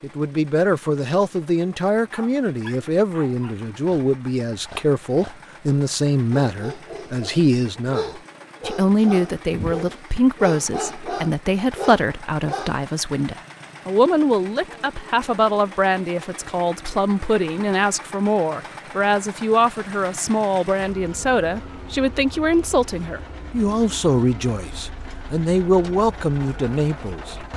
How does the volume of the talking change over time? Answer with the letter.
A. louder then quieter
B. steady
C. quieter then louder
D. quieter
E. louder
B.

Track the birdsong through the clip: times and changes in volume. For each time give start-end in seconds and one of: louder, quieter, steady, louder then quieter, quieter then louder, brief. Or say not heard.
not heard.